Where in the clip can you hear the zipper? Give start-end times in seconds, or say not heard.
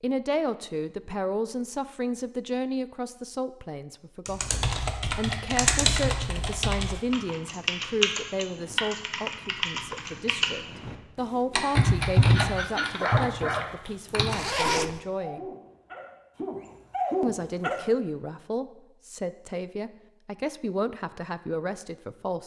14.2-15.0.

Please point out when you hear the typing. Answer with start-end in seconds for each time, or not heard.
4.2-14.4.